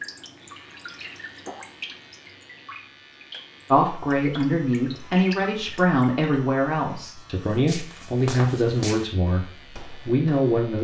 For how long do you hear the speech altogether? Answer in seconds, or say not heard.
7 s.